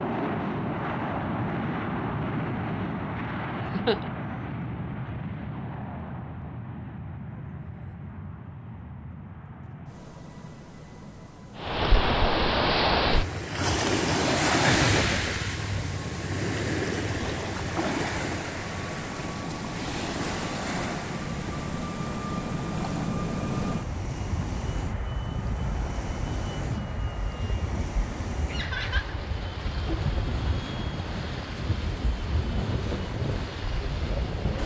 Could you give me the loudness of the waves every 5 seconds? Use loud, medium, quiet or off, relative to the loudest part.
off, off, loud, medium, quiet, quiet, quiet.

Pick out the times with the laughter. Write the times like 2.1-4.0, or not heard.
3.6-4.1, 14.8-15.8, 28.4-29.1.